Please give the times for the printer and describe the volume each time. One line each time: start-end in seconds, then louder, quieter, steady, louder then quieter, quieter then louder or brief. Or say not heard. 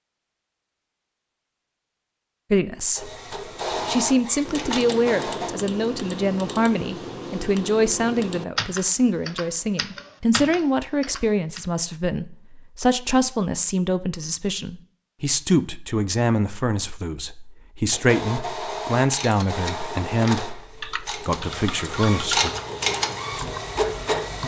3.0-5.5 brief
17.9-24.4 quieter then louder.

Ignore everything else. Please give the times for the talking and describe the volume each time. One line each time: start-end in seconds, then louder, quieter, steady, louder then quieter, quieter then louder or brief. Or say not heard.
2.5-3.1 brief
3.9-22.5 steady.